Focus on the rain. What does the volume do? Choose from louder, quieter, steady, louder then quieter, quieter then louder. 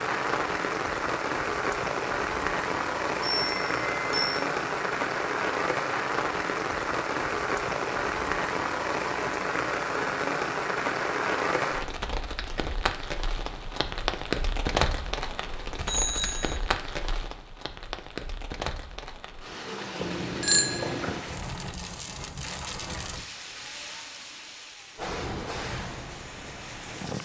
quieter.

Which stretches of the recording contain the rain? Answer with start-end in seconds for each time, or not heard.
0.0-27.2.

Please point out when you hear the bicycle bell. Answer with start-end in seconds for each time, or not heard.
3.4-4.5, 15.8-16.6, 20.0-21.2.